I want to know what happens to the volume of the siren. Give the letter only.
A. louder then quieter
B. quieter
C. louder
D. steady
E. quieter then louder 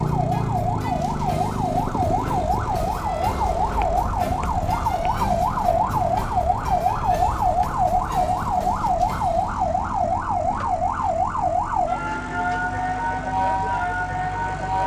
D.